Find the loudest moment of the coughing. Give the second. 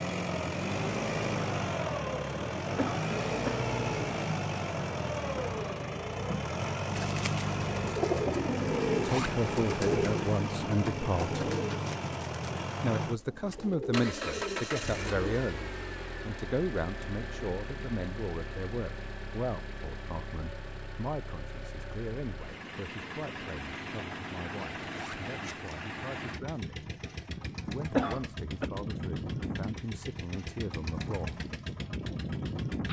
28 s.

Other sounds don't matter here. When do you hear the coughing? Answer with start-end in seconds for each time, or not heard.
2.8-3.7, 27.9-28.7.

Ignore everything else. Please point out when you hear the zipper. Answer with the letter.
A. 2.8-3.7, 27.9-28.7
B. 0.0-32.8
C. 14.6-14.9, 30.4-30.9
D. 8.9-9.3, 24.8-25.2
D.